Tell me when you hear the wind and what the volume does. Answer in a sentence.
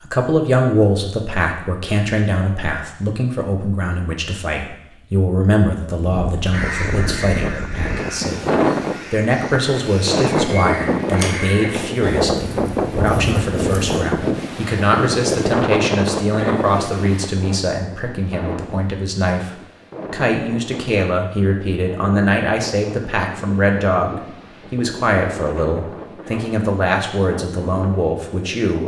The wind can be heard from 6.0 to 28.8 s, getting quieter.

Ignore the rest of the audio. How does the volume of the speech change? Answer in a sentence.
The volume of the speech stays about the same.